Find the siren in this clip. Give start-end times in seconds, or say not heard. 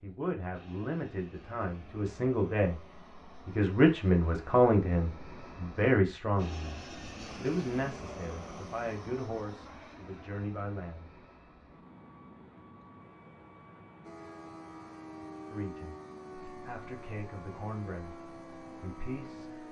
14.0-19.6.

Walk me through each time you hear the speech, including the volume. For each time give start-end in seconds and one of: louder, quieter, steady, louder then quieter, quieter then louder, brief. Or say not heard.
0.0-2.8 brief
3.5-11.1 quieter
15.5-19.6 louder.